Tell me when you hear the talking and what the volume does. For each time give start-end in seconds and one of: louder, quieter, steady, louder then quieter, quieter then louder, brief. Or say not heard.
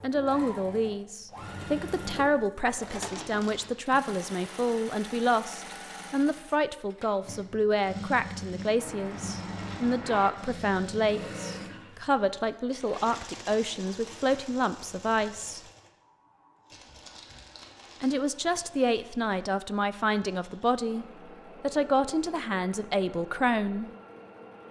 0.0-15.6 steady
18.0-23.9 steady.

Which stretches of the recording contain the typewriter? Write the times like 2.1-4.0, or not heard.
not heard.